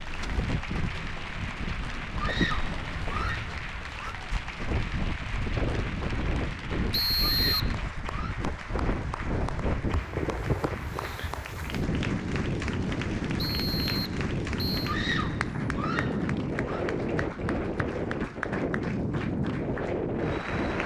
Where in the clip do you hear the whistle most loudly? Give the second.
7 s.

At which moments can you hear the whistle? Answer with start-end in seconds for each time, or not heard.
6.9-7.8, 13.3-14.9.